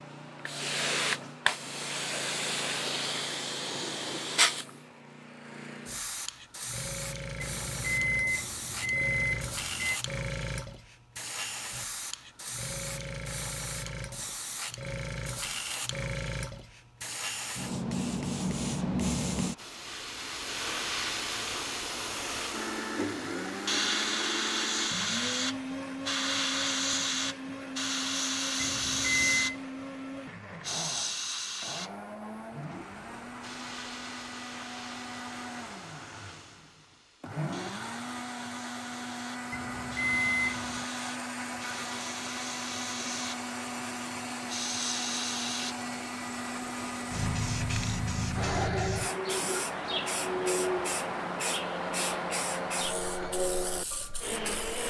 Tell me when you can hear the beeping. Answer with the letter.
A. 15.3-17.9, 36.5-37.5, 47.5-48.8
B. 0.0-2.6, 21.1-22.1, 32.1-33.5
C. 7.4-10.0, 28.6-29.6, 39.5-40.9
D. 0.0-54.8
C.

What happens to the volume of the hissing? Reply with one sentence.
The volume of the hissing goes down, then up.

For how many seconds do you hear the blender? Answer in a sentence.
You can hear the blender for 32 seconds altogether.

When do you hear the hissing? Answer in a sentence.
You can hear the hissing from 0.0 to 54.8 s.